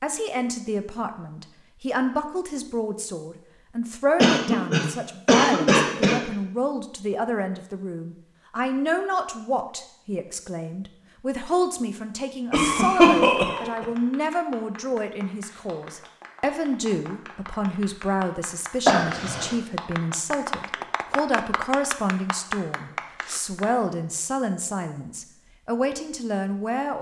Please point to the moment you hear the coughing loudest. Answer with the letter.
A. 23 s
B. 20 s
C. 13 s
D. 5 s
C.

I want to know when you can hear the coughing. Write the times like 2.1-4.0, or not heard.
4.2-6.2, 12.5-13.8, 18.9-19.6.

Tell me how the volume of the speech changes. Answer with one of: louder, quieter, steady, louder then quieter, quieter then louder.
steady.